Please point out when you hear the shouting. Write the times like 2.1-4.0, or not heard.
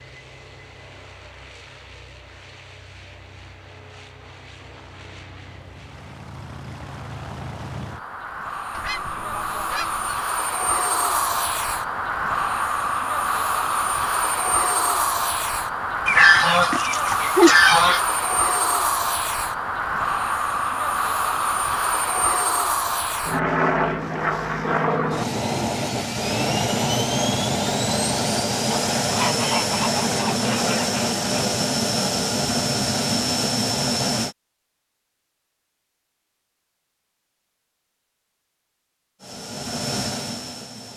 not heard.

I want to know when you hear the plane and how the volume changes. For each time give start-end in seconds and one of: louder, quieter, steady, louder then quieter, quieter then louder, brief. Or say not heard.
0.0-34.4 louder
39.2-40.9 brief.